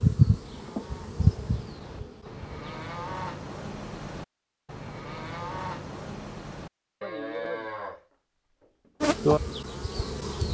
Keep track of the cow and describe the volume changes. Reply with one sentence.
The loudness of the cow goes up, then down.